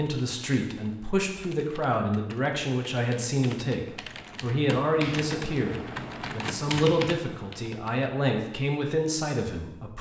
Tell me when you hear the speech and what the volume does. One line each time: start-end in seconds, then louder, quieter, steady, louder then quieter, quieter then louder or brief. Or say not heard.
0.0-9.9 steady.